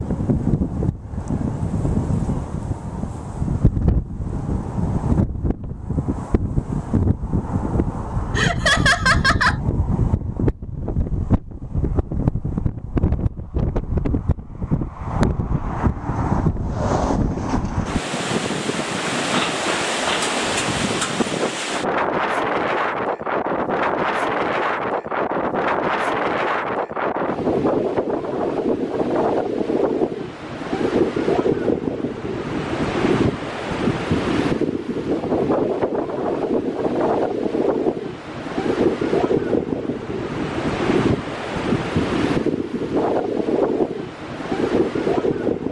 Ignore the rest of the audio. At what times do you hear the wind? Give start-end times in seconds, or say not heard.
0.0-45.6.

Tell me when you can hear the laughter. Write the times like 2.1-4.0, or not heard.
8.3-9.6.